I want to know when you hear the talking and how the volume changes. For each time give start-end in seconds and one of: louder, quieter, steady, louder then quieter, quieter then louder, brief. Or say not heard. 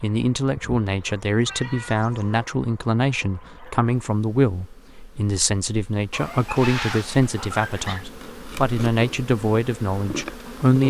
0.0-10.8 steady.